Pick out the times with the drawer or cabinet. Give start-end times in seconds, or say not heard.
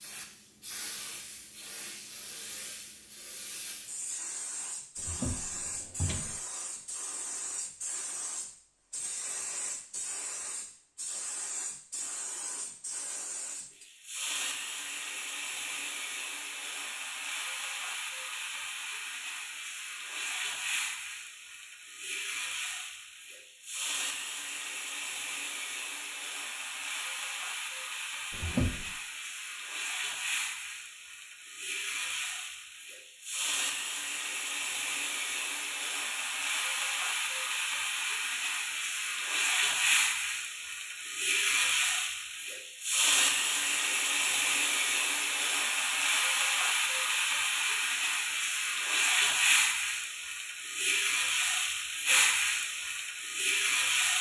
5.0-6.4, 28.3-28.9.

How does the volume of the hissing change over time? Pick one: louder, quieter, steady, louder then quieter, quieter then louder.
louder.